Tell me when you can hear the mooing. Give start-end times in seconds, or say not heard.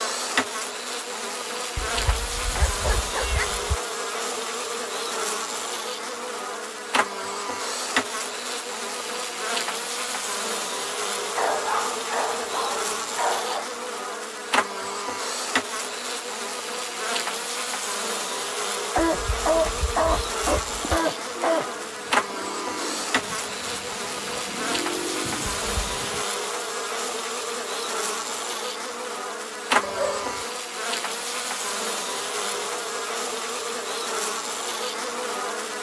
not heard.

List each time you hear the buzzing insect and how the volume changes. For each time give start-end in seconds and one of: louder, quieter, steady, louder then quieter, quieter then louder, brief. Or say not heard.
0.0-35.7 steady.